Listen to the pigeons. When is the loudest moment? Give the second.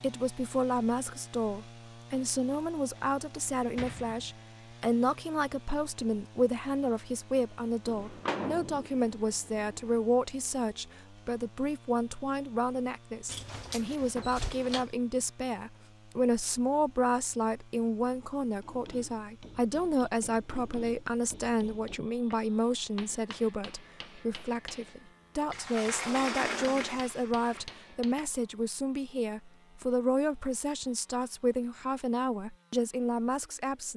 8 s.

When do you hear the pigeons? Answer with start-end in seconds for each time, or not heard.
7.8-9.8.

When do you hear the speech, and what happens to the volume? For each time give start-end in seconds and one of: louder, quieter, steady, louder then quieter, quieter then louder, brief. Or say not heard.
0.0-33.9 steady.